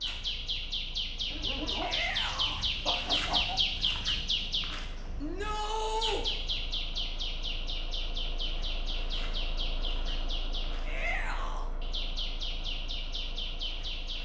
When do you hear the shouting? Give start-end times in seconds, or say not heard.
1.8-2.6, 5.2-6.2, 10.8-11.7.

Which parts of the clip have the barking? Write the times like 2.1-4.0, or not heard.
1.2-3.6.